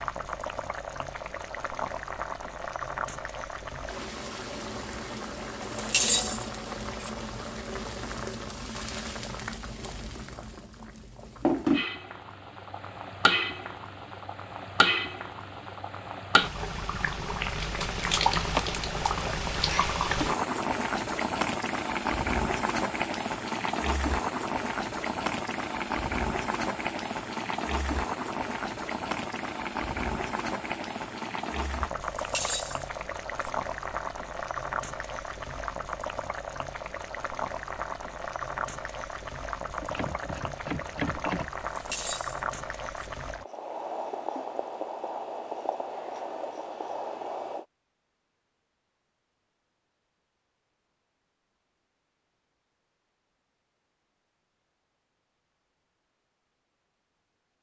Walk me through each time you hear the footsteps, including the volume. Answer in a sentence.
The footsteps can't be heard in this clip.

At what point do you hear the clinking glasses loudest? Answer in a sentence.
The loudest moment of the clinking glasses is at 6 seconds.